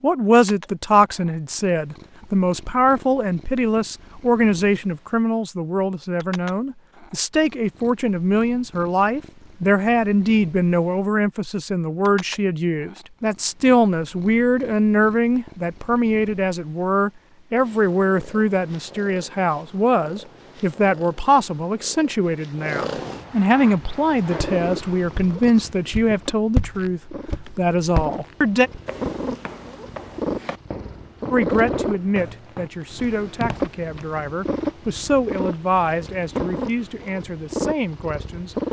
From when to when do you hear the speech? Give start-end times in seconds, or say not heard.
0.0-28.7, 31.3-38.5.